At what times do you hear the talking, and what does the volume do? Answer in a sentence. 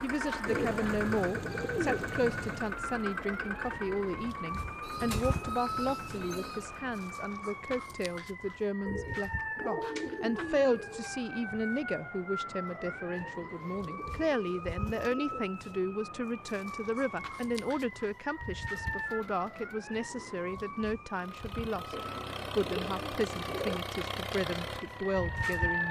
You can hear the talking from 0.0 to 25.8 s, at a steady volume.